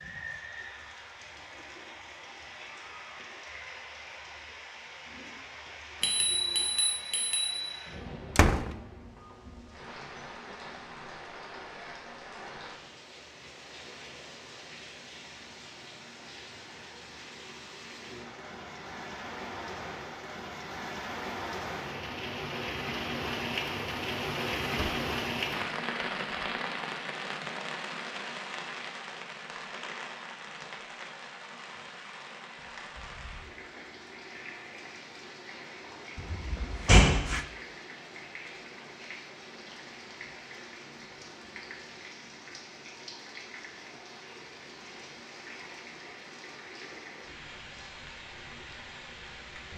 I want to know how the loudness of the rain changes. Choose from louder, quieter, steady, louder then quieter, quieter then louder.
louder then quieter.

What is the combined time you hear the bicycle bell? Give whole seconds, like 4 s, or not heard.
2 s.